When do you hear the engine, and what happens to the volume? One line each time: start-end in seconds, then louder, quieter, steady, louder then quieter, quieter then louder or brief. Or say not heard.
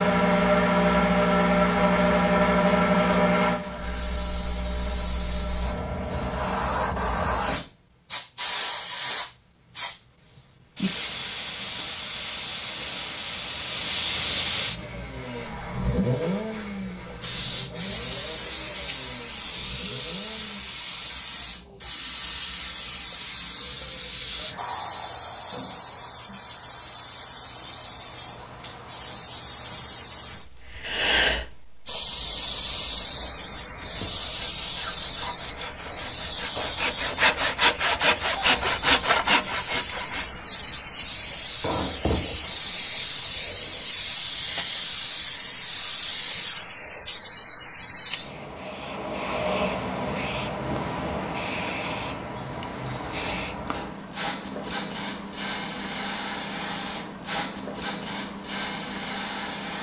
0.0-6.6 quieter
14.8-20.6 quieter.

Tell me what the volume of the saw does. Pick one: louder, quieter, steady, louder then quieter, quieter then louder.
louder.